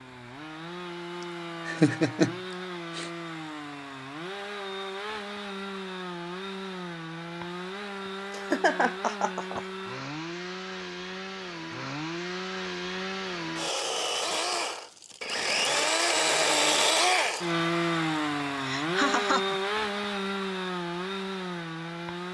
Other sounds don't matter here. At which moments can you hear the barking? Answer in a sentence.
The barking can't be heard in this clip.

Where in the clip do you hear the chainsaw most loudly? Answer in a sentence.
The loudest moment of the chainsaw is at 17 seconds.